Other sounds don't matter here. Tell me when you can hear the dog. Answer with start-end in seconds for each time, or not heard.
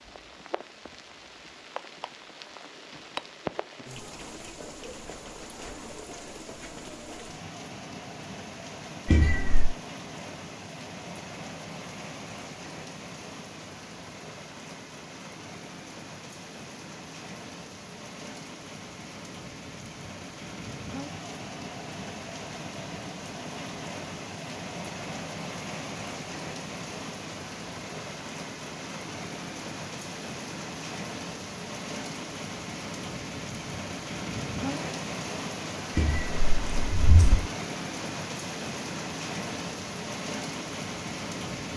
not heard.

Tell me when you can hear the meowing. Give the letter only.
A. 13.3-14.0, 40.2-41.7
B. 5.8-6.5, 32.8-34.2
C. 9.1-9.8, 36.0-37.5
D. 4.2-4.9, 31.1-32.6
C.